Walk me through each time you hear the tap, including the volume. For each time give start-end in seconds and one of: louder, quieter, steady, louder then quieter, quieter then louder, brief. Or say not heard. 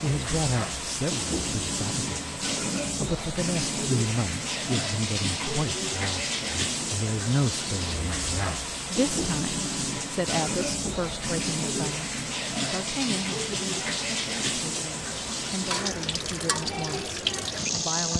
0.0-18.1 steady.